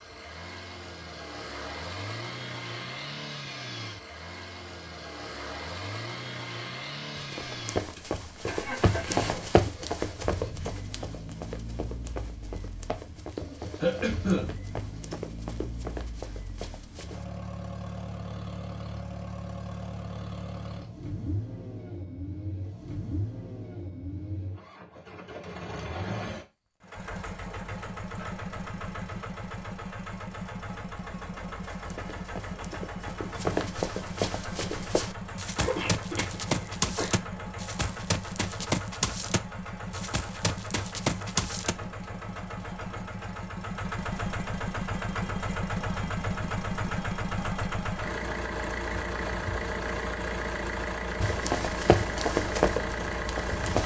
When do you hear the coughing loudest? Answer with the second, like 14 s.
14 s.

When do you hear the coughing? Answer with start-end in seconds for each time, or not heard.
13.8-14.4, 35.5-37.1.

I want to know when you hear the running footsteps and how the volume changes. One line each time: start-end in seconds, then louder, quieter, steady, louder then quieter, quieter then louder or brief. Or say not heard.
7.2-17.2 quieter
31.7-41.8 steady
51.2-53.8 brief.